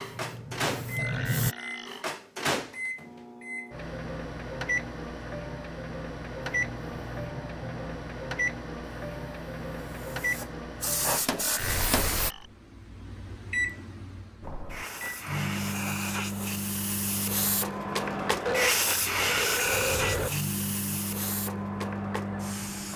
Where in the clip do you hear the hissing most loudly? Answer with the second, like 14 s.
19 s.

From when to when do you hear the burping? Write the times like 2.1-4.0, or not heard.
0.9-2.1, 11.3-12.4, 18.4-20.3.